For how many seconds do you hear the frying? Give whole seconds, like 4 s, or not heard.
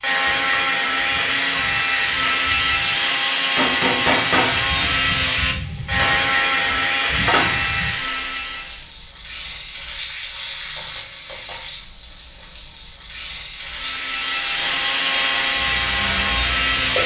17 s.